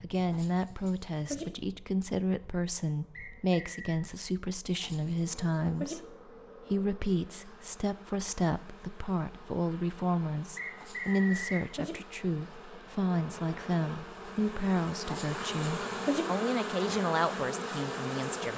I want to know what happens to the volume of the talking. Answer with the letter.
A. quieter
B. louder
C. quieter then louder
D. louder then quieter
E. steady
E.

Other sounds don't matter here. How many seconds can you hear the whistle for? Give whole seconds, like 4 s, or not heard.
2 s.